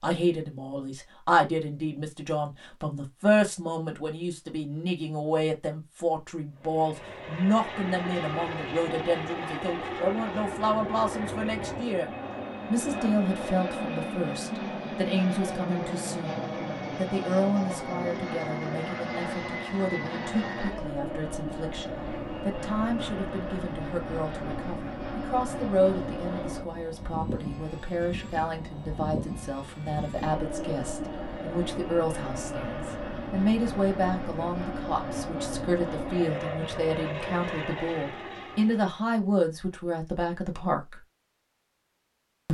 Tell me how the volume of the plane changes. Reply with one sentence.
The volume of the plane stays about the same.